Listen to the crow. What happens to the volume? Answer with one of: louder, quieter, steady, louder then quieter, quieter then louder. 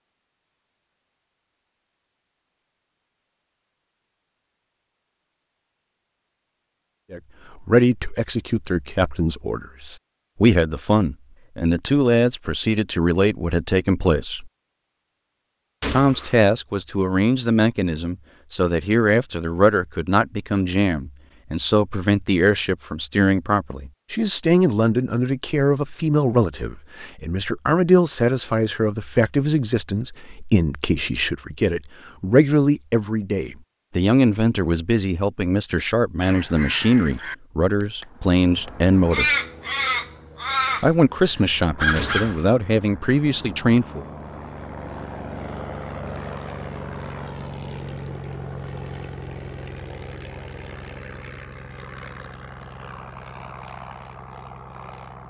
quieter then louder.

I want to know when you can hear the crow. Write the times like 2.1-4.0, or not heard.
36.2-42.4.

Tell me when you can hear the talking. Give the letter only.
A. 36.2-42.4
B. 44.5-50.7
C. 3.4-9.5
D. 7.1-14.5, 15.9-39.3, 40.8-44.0
D.